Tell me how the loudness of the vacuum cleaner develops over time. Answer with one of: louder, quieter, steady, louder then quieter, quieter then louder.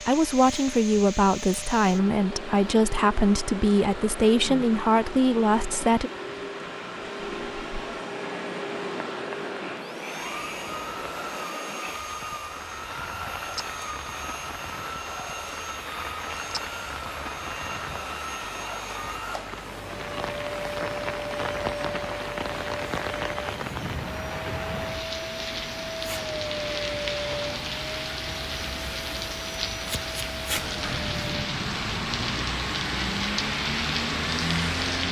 steady.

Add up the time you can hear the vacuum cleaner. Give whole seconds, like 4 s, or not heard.
35 s.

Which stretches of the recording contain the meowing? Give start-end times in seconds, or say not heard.
not heard.